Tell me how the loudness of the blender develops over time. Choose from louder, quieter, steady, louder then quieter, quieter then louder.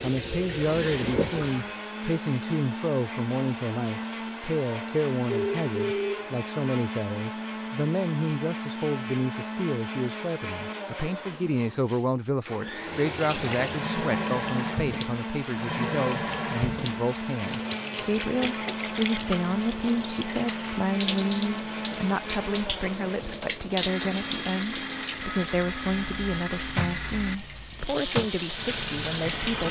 steady.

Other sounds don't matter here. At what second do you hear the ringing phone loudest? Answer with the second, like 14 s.
6 s.